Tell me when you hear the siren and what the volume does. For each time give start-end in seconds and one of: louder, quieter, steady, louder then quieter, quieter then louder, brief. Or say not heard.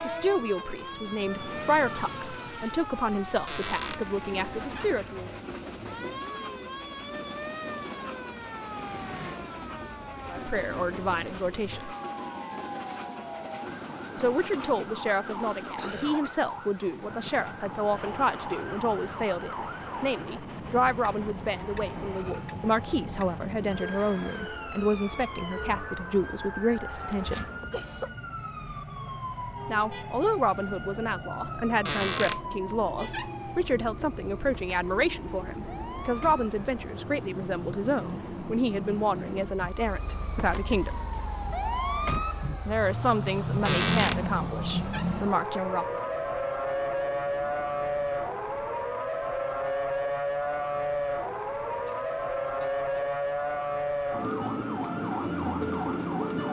0.0-56.4 louder.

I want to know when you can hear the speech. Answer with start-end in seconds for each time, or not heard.
0.0-5.3, 10.3-11.9, 14.2-27.4, 29.6-41.0, 42.6-46.0.